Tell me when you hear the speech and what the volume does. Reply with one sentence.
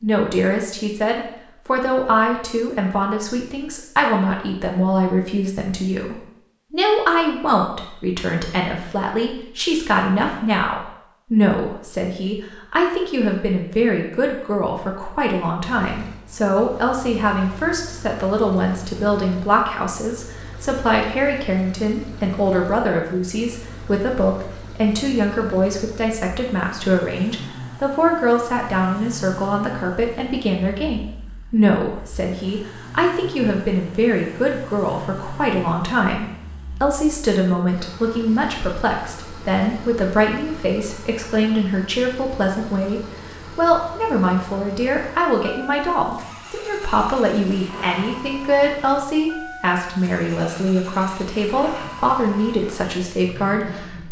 You can hear the speech from 0.0 to 54.0 s, at a steady volume.